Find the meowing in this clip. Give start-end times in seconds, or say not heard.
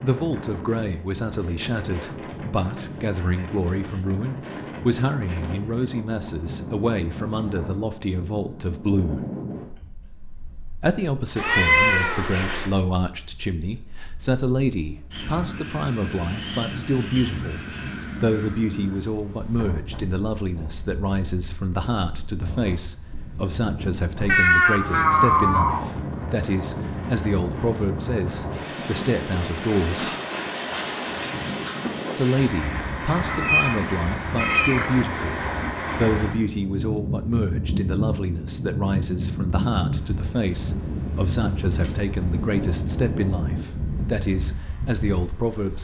11.3-12.7, 24.2-25.9, 33.3-34.9.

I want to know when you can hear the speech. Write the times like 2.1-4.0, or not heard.
0.0-9.2, 10.8-30.1, 32.1-45.7.